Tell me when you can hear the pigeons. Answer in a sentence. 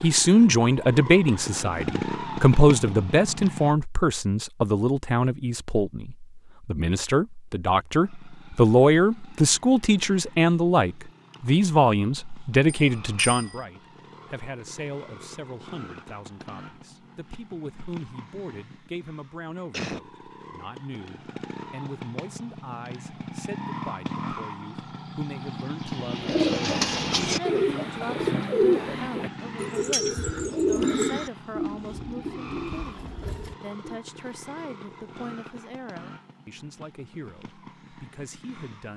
The pigeons can be heard from 25.9 to 34.0 s.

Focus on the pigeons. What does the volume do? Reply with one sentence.
The loudness of the pigeons goes down.